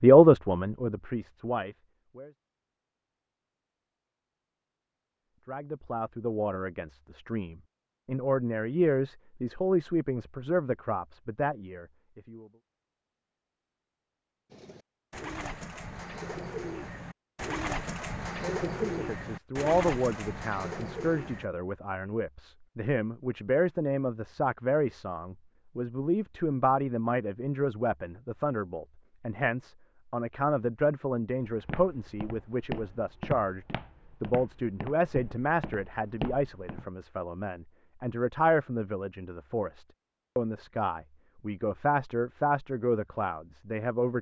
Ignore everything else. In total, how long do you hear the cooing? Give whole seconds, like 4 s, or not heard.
7 s.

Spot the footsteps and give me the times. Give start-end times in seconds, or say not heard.
31.4-36.9.